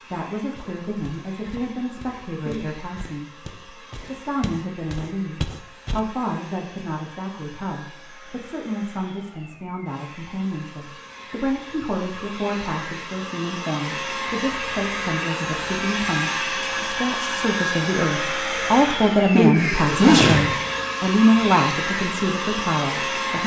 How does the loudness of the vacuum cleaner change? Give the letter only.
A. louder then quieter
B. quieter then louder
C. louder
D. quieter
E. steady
C.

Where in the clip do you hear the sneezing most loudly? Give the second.
20 s.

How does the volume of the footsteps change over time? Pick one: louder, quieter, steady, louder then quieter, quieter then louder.
louder.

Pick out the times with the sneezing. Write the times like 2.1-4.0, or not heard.
2.2-2.7, 19.1-20.6.